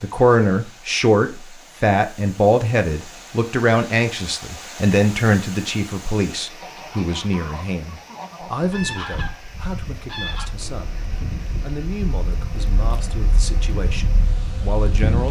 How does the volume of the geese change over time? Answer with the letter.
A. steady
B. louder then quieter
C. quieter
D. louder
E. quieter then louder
B.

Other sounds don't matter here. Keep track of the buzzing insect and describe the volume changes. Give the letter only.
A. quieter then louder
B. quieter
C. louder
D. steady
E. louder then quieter
D.